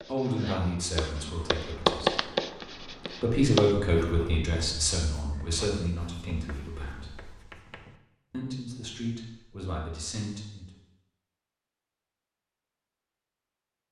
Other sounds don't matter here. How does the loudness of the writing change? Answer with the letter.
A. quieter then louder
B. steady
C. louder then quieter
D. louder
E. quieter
C.